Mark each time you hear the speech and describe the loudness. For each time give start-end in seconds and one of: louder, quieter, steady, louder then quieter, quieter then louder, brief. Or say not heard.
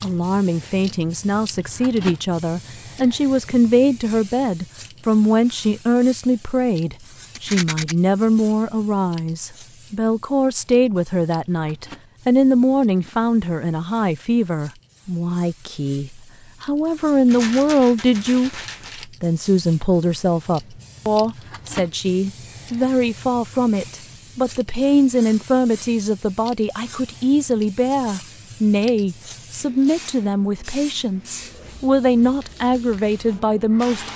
0.0-34.1 steady.